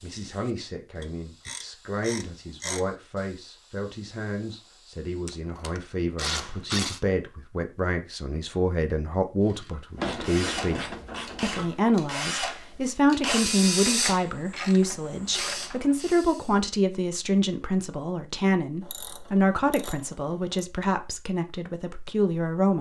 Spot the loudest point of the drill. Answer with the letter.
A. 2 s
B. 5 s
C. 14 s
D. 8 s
C.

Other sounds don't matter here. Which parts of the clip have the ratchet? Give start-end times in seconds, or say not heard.
1.0-2.9, 5.2-7.0, 9.9-11.8, 13.8-16.1, 18.8-20.6.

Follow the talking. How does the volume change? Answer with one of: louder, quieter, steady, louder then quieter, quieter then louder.
louder.